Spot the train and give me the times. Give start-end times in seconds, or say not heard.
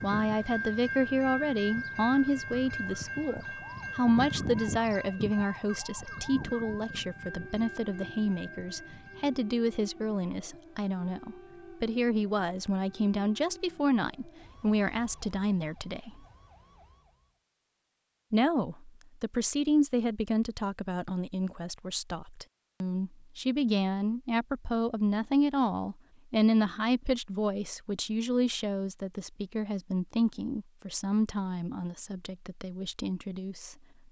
0.0-9.4.